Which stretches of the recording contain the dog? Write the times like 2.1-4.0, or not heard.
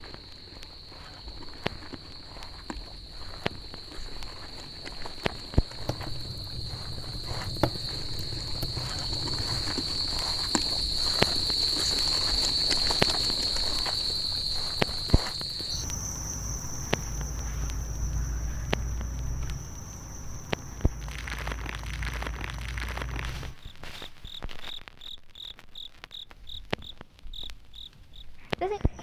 not heard.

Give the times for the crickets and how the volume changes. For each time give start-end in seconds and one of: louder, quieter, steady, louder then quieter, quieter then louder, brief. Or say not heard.
0.0-28.9 louder then quieter.